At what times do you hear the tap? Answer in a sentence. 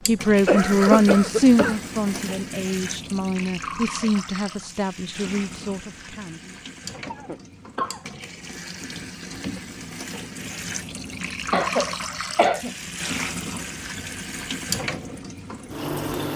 You can hear the tap from 0.0 to 16.3 s.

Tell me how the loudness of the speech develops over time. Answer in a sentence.
The volume of the speech goes down.